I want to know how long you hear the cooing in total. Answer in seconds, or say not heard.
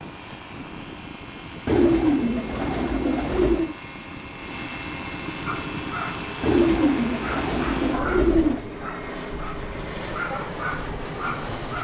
4 s.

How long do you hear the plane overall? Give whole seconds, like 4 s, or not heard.
12 s.